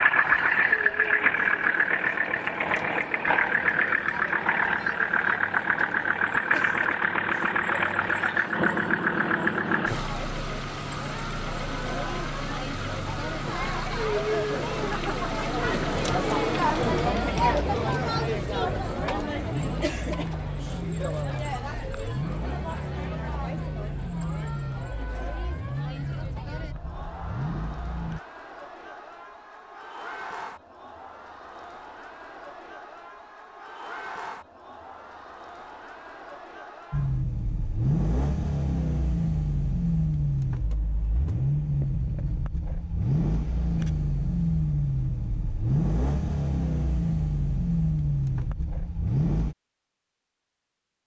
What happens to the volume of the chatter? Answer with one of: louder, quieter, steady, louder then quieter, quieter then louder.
louder then quieter.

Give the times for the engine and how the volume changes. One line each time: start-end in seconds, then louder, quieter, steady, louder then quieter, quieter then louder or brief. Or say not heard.
0.0-28.2 quieter
36.9-49.5 steady.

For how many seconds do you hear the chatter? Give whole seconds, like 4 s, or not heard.
37 s.